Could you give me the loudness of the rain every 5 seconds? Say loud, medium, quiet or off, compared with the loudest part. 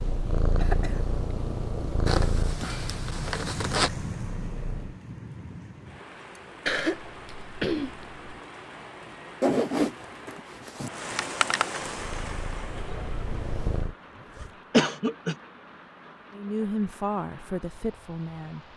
loud, medium, loud, quiet.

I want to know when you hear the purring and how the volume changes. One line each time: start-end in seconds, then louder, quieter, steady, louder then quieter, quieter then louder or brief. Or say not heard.
0.0-5.0 quieter
11.9-13.9 brief.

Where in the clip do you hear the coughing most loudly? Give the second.
15 s.